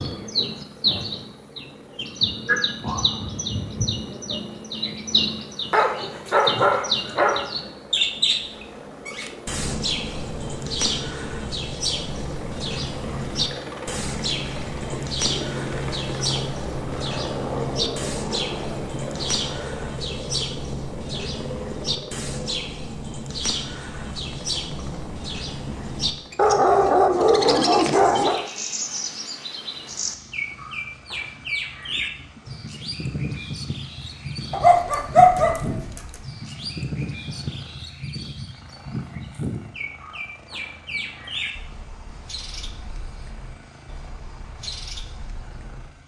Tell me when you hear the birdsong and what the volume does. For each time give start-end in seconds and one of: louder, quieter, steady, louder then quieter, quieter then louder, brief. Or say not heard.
0.0-45.9 quieter.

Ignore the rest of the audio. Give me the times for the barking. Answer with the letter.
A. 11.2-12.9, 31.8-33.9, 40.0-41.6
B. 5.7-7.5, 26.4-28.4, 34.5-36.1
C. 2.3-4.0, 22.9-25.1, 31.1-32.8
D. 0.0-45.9
B.